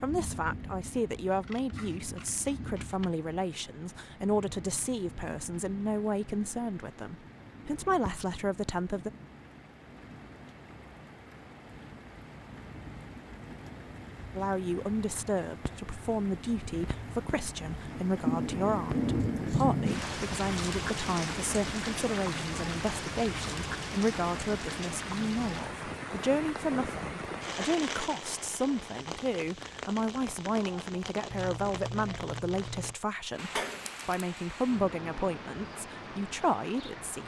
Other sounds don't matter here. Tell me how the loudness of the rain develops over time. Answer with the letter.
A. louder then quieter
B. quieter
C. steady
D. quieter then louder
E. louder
A.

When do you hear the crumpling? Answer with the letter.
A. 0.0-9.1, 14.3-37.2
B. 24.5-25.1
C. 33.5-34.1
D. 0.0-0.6
C.